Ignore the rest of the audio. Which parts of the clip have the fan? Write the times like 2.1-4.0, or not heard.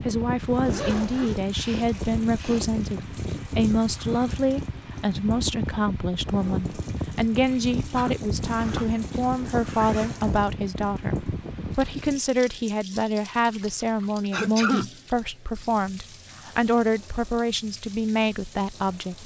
0.0-12.2.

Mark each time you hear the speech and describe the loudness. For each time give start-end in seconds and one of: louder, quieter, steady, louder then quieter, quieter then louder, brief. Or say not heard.
0.0-19.2 steady.